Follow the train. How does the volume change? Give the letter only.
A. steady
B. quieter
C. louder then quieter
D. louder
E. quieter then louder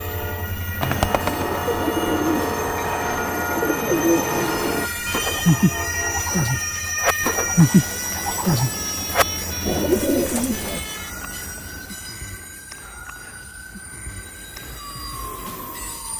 B.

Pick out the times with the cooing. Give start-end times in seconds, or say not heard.
0.8-10.8.